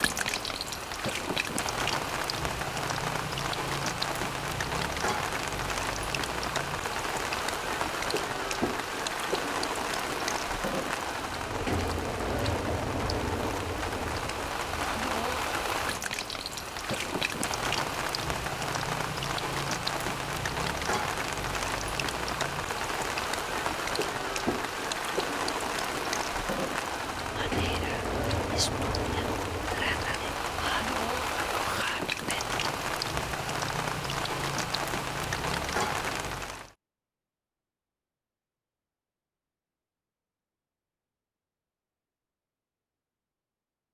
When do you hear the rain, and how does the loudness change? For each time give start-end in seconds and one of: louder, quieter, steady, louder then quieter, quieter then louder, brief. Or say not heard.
0.0-36.7 steady.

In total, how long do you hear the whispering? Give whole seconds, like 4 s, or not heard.
5 s.